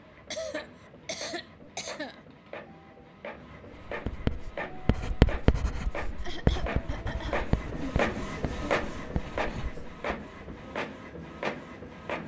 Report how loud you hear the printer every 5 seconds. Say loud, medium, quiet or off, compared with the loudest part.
medium, loud, loud.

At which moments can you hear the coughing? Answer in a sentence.
The coughing can be heard from 0.3 to 2.2 s and from 6.2 to 8.0 s.